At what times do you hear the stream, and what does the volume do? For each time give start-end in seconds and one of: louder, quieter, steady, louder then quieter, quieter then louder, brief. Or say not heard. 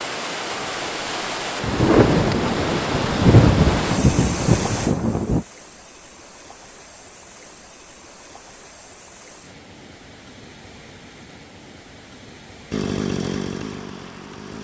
0.0-14.5 quieter.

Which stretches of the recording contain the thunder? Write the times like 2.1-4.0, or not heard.
1.6-5.5.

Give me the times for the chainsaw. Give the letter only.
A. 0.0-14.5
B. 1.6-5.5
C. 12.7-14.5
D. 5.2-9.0
C.